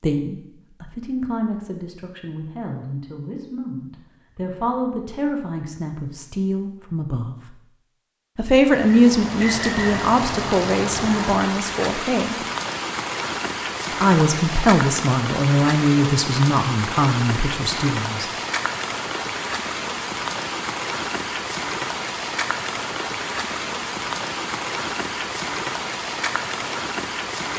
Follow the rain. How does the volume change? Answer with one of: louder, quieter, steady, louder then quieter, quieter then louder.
steady.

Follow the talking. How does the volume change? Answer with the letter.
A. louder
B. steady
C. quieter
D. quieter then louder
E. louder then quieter
A.